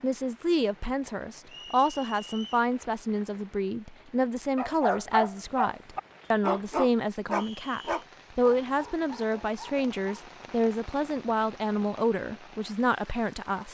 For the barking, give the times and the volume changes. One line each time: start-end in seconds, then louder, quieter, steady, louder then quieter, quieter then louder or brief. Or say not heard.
4.5-10.3 quieter.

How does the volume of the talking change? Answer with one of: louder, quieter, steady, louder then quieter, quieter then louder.
steady.